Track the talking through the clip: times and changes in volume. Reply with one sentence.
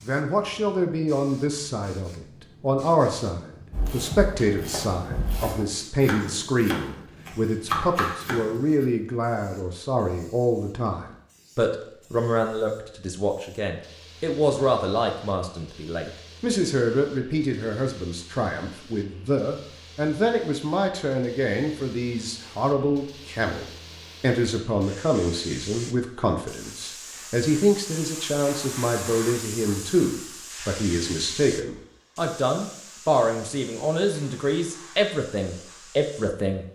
You can hear the talking from 0.1 to 36.6 s, at a steady volume.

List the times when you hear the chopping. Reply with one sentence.
You can hear the chopping from 3.7 to 8.8 s.